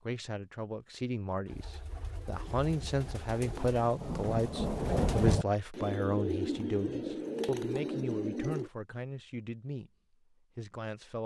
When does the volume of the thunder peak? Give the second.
5 s.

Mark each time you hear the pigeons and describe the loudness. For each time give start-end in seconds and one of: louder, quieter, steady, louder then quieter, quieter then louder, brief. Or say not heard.
1.4-8.7 louder.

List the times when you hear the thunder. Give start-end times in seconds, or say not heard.
2.5-5.5.